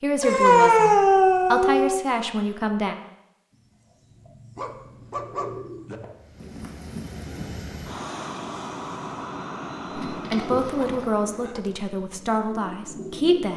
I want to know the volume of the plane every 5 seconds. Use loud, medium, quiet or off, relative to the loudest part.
off, loud, loud.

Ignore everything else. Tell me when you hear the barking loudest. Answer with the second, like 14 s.
1 s.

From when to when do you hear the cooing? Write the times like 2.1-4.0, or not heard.
3.5-7.6, 9.9-13.5.